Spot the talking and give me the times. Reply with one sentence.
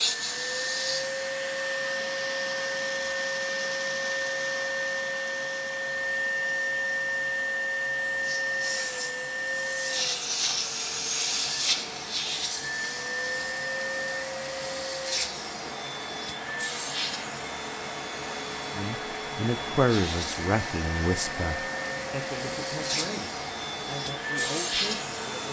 You can hear the talking from 18.8 to 25.4 s.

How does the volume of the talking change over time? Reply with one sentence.
The volume of the talking goes down.